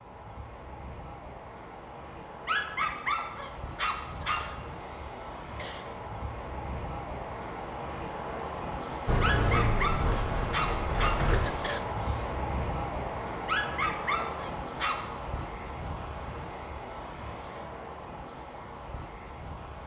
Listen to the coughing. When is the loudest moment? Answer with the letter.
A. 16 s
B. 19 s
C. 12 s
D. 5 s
C.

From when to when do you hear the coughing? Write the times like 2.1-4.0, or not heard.
4.2-5.8, 11.4-12.2.